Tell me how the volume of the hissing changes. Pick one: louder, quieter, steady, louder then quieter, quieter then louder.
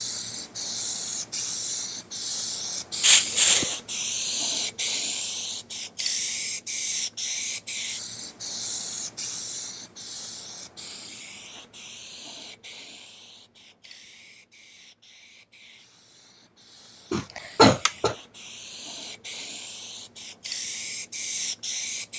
quieter then louder.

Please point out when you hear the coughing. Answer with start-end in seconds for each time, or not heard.
3.0-3.8, 17.1-18.1.